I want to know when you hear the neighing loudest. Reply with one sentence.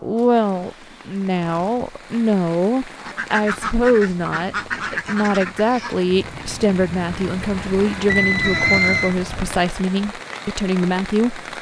The volume of the neighing peaks at 9 seconds.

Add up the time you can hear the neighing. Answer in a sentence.
The neighing can be heard for 3 seconds in total.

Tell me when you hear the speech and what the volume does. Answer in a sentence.
You can hear the speech from 0.0 to 11.5 s, at a steady volume.